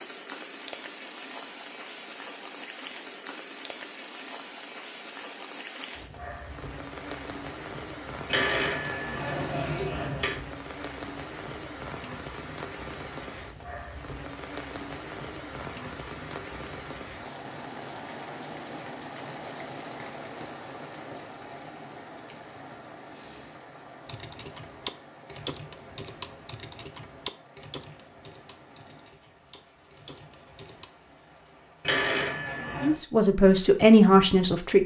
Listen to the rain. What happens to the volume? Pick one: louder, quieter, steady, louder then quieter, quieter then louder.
quieter.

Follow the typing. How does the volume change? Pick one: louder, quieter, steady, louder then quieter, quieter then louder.
quieter.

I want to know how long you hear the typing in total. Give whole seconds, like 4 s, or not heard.
7 s.